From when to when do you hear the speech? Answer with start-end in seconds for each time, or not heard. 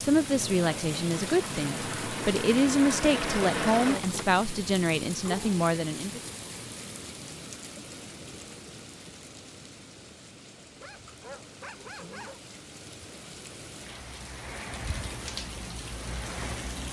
0.0-6.2.